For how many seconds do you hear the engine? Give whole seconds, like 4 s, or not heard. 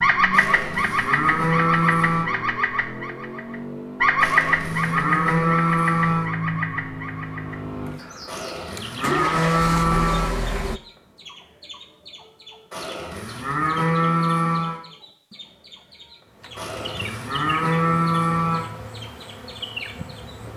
11 s.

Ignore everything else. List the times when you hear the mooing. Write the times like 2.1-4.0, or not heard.
0.3-2.2, 4.2-6.3, 8.2-10.3, 12.7-14.8, 16.6-18.6.